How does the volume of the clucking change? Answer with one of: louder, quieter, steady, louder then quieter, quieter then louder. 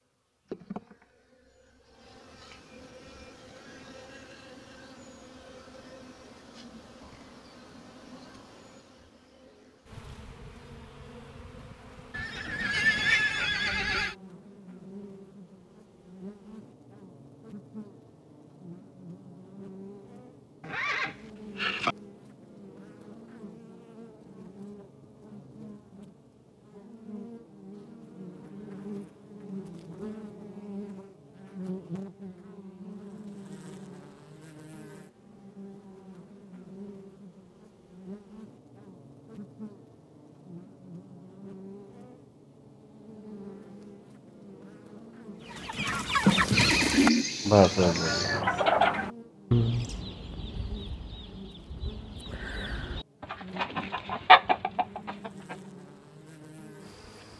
quieter then louder.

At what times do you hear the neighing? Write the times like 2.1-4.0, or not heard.
12.1-14.2, 20.6-21.9, 46.5-48.4.